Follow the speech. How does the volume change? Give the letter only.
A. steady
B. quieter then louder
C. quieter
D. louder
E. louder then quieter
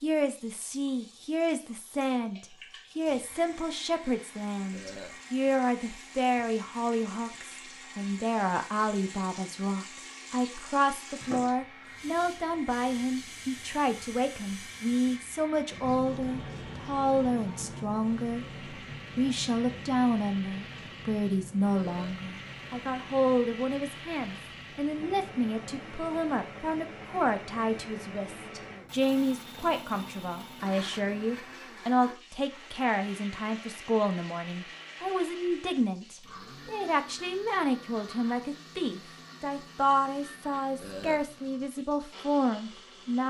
A.